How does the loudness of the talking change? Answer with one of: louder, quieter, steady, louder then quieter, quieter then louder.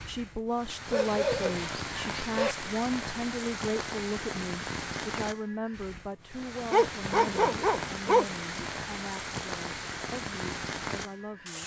quieter.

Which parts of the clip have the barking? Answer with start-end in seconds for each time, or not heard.
0.9-2.5, 6.7-8.7.